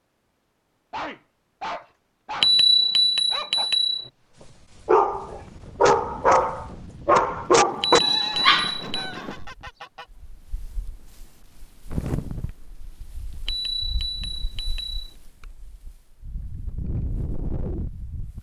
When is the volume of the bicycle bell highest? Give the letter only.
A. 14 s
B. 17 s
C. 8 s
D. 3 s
D.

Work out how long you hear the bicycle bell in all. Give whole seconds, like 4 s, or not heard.
5 s.